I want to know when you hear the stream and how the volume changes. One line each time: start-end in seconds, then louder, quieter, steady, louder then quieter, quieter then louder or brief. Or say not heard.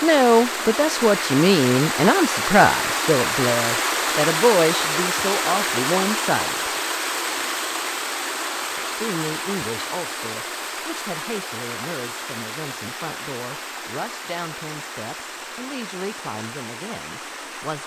0.0-17.8 quieter.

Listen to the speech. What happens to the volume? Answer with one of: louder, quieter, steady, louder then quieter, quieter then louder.
quieter.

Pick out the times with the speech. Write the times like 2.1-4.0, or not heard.
0.0-6.7, 8.8-17.8.